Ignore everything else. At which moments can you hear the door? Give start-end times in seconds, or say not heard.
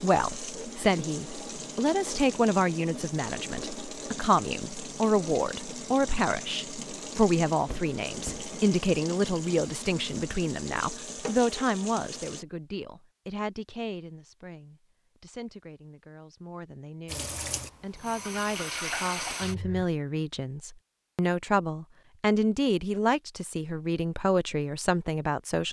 7.7-8.5.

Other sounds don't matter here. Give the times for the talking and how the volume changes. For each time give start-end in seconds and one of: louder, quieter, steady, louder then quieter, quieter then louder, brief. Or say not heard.
0.0-25.6 quieter then louder.